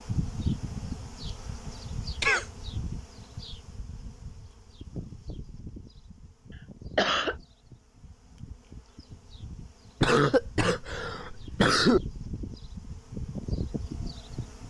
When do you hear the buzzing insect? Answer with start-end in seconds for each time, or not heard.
0.0-14.6.